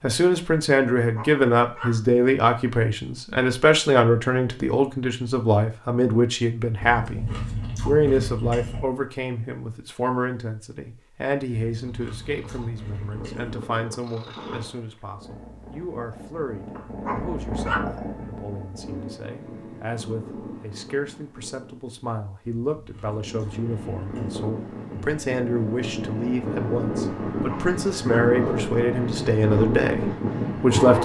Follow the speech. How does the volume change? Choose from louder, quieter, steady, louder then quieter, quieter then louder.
quieter then louder.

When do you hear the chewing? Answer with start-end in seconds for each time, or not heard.
6.8-8.8, 11.6-13.6, 22.6-24.4.